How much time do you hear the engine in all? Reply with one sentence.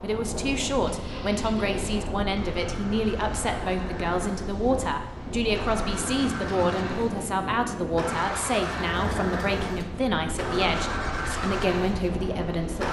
The engine can be heard for 13 seconds in total.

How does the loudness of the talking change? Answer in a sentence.
The volume of the talking stays about the same.